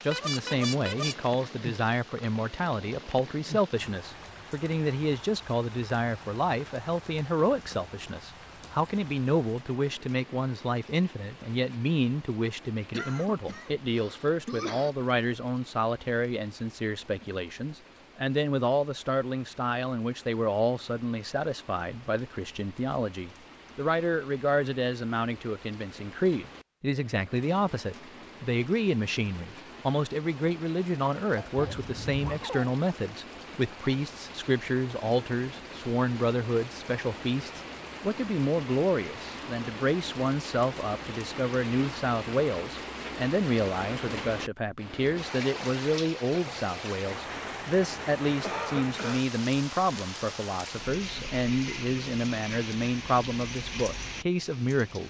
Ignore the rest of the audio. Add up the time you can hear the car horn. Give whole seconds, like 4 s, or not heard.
2 s.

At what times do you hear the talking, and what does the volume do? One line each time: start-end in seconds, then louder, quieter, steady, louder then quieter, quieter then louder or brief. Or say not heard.
0.0-55.0 steady.